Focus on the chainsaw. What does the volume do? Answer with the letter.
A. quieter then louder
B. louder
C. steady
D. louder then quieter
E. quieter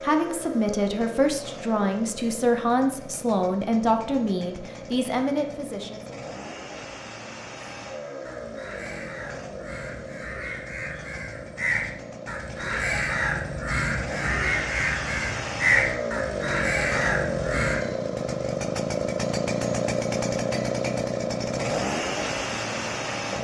B.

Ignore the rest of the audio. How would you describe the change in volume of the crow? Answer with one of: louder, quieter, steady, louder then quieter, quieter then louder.
louder.